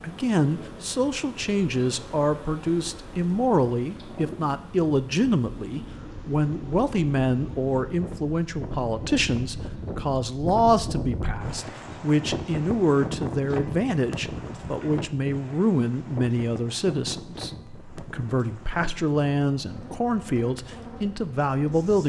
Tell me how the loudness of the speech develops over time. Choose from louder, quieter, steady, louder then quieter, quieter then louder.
steady.